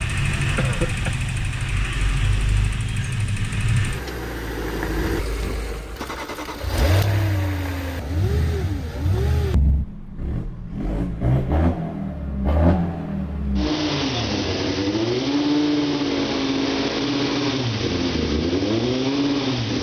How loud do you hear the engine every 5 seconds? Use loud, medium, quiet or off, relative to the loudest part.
medium, medium, loud, loud.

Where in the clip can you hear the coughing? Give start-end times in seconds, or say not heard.
0.6-1.1.